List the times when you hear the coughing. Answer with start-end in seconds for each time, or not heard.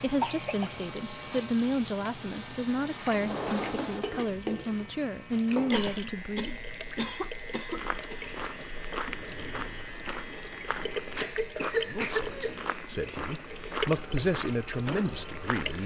0.2-0.7, 5.7-8.2, 11.2-12.6.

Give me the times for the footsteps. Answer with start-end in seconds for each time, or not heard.
7.7-15.8.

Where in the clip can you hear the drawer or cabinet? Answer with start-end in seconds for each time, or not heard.
3.1-4.2, 9.1-9.9.